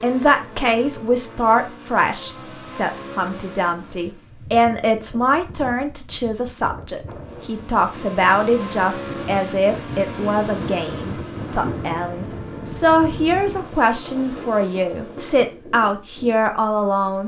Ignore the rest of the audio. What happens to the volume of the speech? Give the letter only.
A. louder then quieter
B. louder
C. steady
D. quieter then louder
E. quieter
C.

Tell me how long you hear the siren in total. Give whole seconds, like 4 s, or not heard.
not heard.